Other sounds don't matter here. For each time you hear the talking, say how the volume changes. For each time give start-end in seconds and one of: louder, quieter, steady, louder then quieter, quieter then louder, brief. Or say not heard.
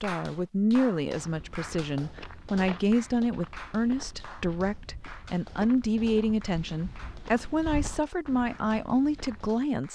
0.0-9.9 steady.